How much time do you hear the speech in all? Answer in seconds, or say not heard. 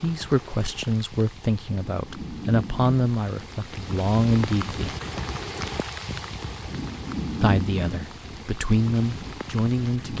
8 s.